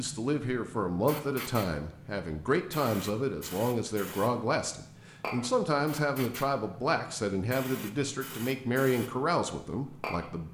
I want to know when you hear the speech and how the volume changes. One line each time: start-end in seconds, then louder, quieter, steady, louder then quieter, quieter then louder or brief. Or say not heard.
0.0-10.4 steady.